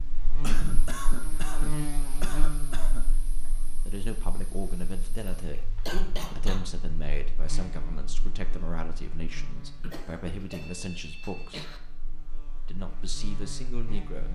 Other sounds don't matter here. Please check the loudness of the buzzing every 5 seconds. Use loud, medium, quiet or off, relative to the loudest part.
loud, medium, medium.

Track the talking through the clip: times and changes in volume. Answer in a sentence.
You can hear the talking briefly from 3.9 to 5.8 s; from 6.3 to 11.7 s, at a steady volume; and briefly from 12.7 to 14.3 s.